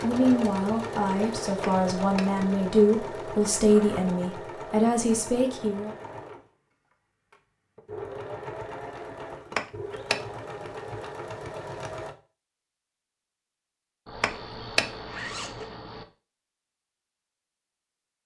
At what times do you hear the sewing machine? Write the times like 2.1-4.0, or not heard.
0.0-12.2.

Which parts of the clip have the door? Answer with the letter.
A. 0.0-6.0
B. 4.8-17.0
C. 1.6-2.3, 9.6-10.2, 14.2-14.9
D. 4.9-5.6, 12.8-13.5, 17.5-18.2
C.